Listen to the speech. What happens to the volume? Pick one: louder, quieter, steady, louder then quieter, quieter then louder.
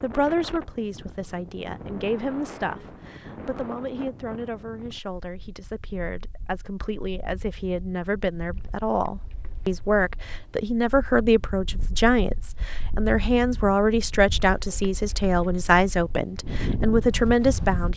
louder.